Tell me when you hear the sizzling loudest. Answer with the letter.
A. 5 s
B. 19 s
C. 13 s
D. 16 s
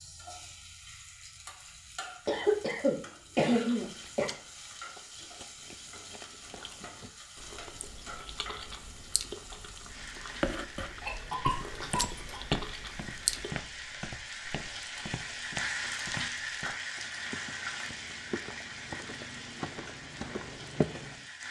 D.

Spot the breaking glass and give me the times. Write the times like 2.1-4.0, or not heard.
11.9-12.3.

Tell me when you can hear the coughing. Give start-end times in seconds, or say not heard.
2.2-4.2, 11.0-12.4.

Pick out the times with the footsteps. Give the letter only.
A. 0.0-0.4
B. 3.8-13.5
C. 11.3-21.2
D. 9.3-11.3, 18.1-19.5
C.